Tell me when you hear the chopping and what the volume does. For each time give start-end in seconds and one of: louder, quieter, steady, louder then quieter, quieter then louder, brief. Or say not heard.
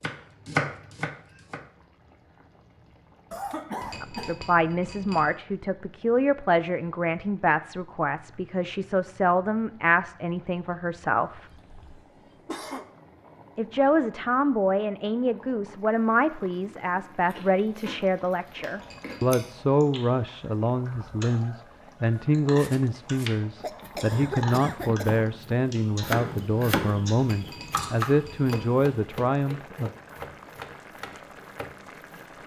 0.0-1.6 brief
22.6-32.4 louder then quieter.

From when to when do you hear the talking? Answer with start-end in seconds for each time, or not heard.
4.0-11.4, 13.6-29.9.